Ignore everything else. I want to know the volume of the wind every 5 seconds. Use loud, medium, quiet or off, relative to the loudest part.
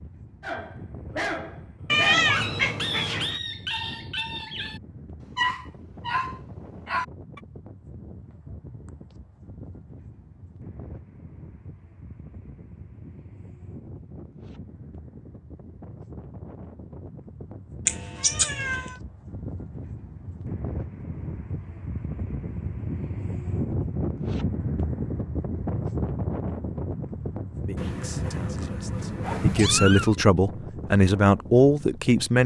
quiet, quiet, quiet, medium, loud, loud, medium.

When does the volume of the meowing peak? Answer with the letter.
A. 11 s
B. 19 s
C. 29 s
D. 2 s
D.